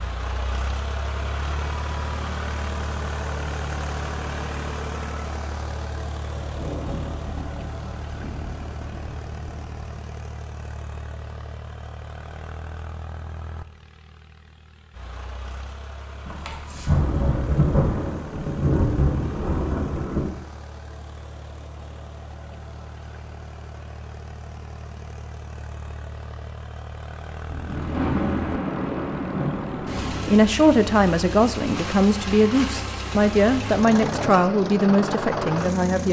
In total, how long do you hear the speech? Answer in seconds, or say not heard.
6 s.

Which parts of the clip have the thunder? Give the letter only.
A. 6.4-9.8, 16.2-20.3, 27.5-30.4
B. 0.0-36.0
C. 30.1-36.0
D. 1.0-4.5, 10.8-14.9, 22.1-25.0
A.